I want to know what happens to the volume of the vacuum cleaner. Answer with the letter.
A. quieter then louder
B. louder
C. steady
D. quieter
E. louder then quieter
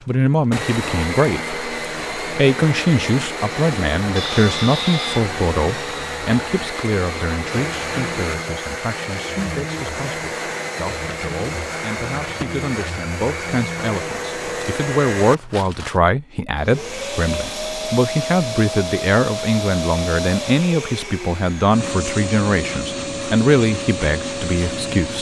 C.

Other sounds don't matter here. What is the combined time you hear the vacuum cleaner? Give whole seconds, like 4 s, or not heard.
25 s.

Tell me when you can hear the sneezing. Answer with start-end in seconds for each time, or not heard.
4.2-5.2.